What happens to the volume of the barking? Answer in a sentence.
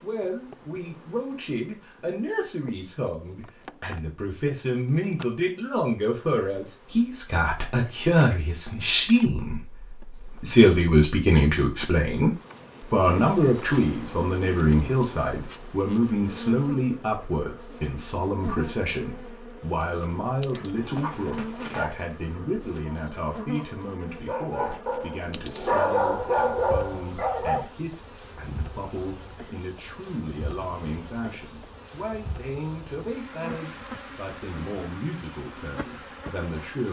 The loudness of the barking goes down, then up.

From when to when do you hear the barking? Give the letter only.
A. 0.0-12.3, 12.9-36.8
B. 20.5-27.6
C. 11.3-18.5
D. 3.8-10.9
B.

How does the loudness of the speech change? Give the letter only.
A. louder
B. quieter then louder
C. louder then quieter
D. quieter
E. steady
C.